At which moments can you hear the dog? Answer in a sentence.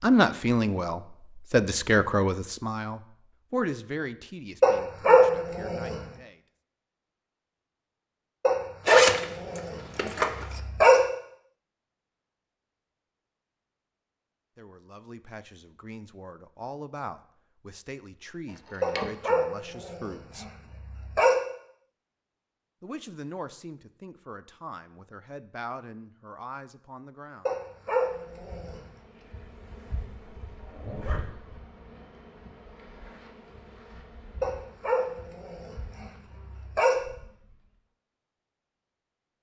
You can hear the dog from 4.6 to 6.0 s, from 8.4 to 11.0 s, from 18.8 to 21.4 s, from 27.4 to 28.9 s and from 34.4 to 37.0 s.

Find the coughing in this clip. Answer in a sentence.
The coughing can't be heard in this clip.